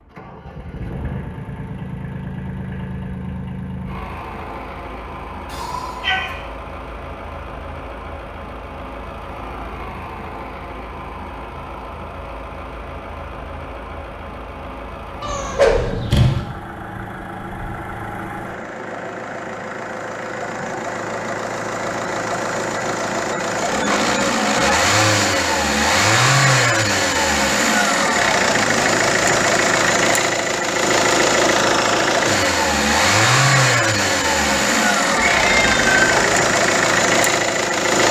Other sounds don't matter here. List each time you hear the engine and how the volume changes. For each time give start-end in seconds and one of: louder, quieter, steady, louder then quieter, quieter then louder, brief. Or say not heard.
0.0-38.0 louder.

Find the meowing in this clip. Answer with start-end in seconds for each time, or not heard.
5.5-6.3, 15.2-16.4, 35.2-36.2.